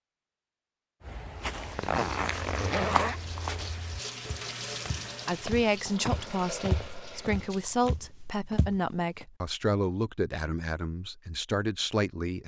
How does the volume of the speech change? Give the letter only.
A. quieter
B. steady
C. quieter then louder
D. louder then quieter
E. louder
B.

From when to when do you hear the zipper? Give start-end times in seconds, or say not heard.
1.8-3.2.